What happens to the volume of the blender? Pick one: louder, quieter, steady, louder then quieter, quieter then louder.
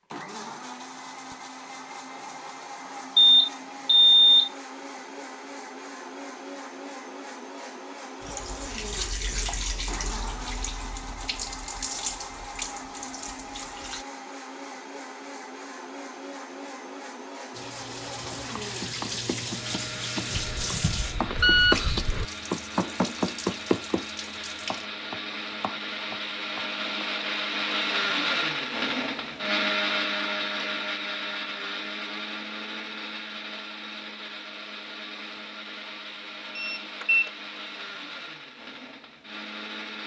louder then quieter.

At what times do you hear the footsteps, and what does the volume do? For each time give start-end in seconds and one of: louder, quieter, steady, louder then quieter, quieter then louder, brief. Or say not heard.
not heard.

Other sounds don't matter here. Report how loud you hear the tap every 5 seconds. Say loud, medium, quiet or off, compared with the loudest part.
off, loud, loud, loud, loud, off, off, off.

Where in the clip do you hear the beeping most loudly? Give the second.
4 s.